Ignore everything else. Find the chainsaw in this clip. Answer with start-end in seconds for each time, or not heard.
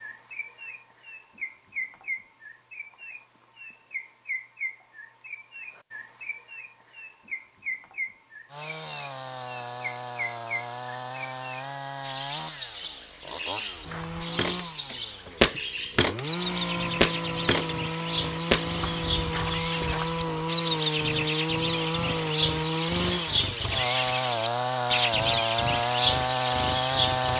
8.5-27.3.